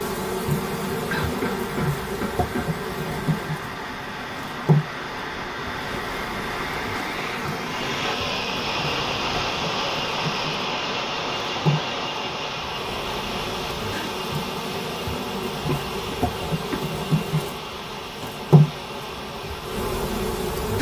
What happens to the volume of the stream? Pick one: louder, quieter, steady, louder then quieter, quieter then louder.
louder then quieter.